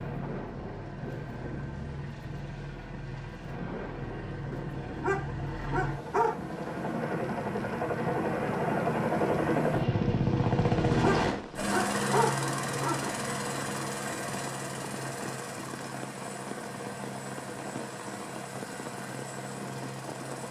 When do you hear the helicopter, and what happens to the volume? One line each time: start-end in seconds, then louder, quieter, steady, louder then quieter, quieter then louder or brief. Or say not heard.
0.0-20.4 louder then quieter.